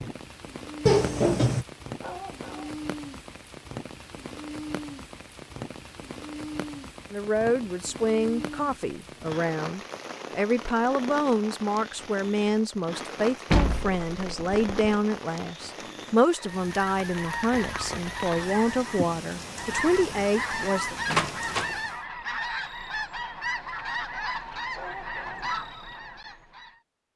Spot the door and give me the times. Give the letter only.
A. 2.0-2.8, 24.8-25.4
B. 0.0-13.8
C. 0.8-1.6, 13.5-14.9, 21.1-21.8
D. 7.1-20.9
C.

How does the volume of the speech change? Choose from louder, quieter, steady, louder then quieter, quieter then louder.
steady.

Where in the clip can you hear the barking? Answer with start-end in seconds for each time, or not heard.
2.0-2.8, 24.8-25.4.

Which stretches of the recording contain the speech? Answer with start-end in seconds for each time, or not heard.
7.1-20.9.